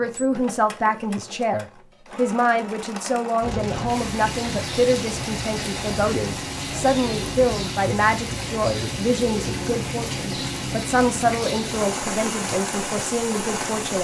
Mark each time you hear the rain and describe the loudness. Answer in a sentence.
You can hear the rain from 3.4 to 13.9 s, at a steady volume.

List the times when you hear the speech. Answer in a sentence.
The speech can be heard from 0.0 to 13.9 s.